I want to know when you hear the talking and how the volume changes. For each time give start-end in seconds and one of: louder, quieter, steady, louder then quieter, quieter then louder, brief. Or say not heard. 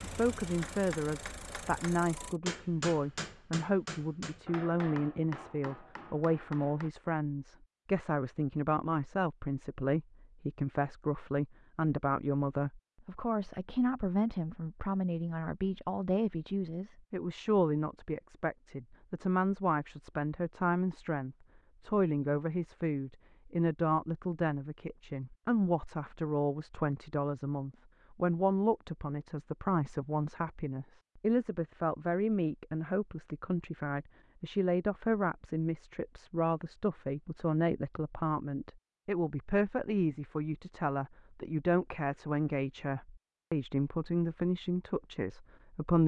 0.0-46.0 steady.